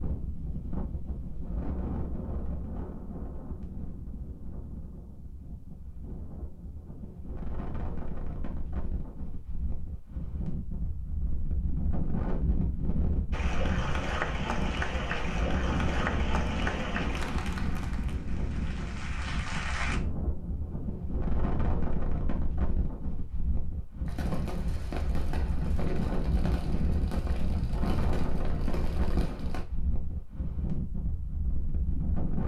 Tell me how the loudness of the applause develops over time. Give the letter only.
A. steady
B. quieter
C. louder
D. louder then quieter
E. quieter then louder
B.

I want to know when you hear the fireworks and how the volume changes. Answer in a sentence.
The fireworks can be heard from 24.1 to 29.6 s, at a steady volume.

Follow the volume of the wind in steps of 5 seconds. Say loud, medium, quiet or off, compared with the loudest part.
medium, medium, loud, loud, loud, loud, loud.